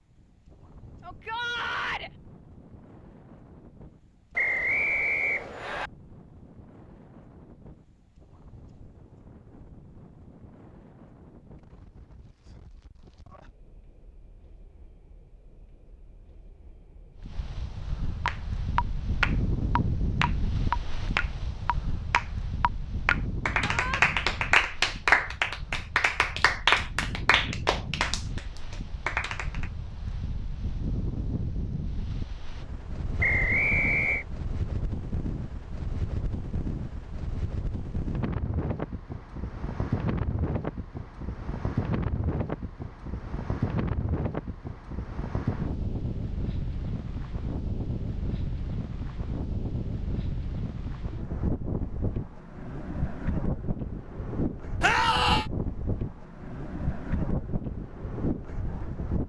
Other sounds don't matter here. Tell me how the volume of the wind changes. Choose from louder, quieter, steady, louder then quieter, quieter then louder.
louder.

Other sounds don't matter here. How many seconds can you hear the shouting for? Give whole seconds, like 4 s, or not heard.
2 s.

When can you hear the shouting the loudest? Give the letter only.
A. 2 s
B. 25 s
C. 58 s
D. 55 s
D.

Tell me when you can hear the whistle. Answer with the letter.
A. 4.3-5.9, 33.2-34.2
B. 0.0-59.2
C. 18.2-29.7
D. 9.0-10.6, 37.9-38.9
A.